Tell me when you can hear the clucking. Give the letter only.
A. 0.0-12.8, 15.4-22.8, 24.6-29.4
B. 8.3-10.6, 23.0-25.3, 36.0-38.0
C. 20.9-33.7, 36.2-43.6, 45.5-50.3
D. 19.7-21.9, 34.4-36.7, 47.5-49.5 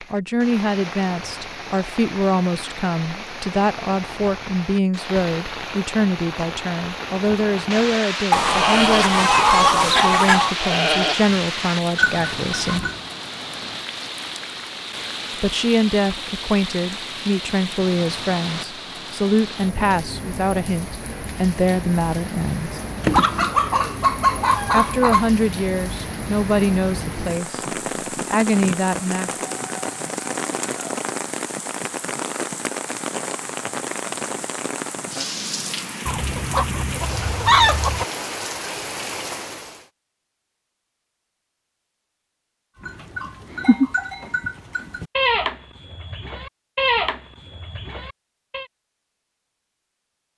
B.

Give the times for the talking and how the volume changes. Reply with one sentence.
You can hear the talking from 0.0 to 12.8 s, at a steady volume; from 15.4 to 22.8 s, at a steady volume; and from 24.6 to 29.4 s, getting quieter then louder.